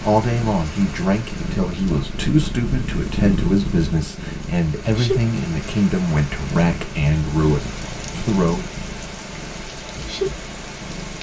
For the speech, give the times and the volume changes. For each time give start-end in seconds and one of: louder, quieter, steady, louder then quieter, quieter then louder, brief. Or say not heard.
0.0-8.7 steady.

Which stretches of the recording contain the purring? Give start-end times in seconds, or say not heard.
0.0-11.1.